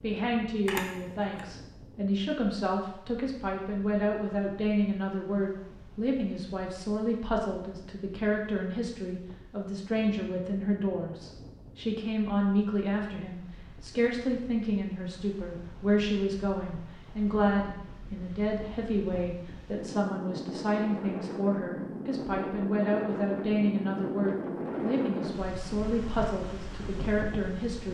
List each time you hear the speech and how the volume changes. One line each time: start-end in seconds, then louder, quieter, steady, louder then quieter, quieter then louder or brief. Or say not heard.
0.0-27.8 steady.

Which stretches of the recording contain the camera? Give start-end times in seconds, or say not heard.
0.7-1.4.